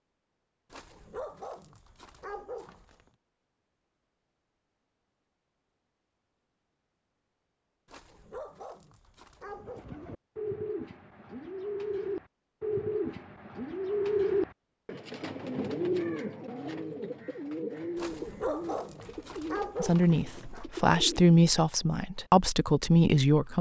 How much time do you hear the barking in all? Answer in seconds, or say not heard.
7 s.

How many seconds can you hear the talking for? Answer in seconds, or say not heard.
4 s.